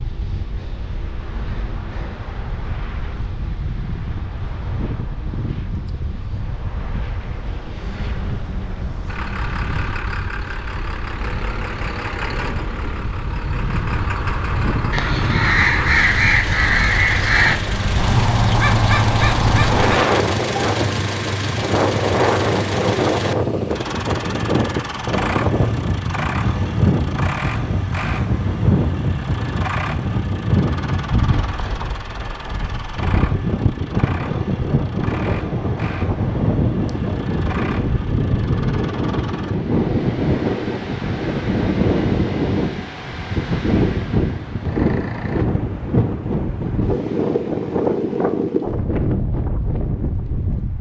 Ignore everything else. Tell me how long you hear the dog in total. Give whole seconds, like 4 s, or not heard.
not heard.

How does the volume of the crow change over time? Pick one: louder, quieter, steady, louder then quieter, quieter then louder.
steady.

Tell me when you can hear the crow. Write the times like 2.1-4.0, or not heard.
14.9-20.0.